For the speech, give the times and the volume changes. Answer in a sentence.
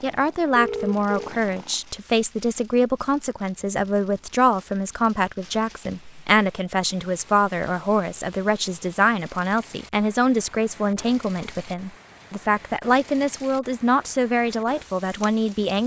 You can hear the speech from 0.0 to 15.8 s, at a steady volume.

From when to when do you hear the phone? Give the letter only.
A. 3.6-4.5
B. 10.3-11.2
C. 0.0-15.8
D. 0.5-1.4
D.